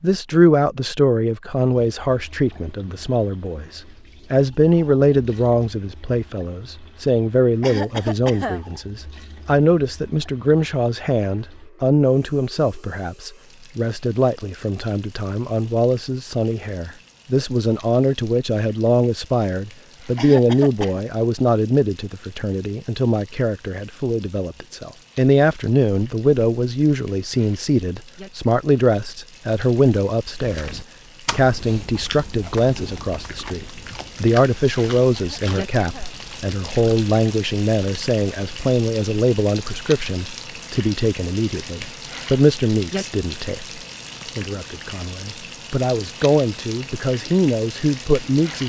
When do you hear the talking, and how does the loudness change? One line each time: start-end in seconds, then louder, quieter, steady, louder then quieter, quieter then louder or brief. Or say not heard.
0.0-48.6 steady.